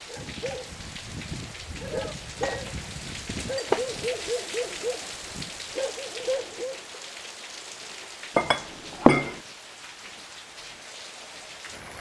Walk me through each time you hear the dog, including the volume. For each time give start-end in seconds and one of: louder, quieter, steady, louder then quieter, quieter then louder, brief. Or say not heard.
0.1-6.8 louder.